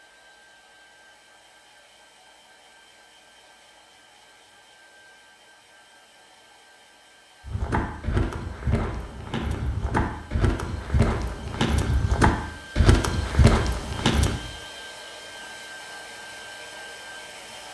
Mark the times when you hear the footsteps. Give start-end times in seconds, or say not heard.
7.5-14.4.